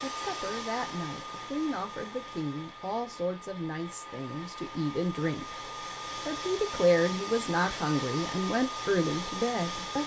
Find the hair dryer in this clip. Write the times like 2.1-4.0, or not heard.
0.0-10.0.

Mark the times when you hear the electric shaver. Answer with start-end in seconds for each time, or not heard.
not heard.